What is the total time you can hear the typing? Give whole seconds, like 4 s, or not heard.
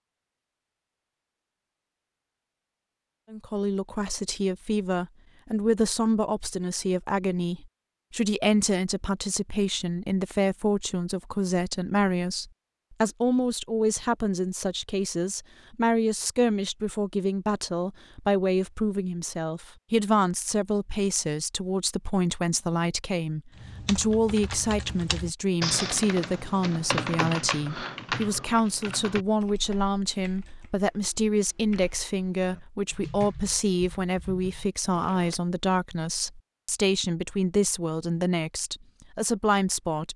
12 s.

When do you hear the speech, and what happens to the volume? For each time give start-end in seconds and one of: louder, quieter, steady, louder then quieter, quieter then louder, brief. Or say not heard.
3.3-40.1 steady.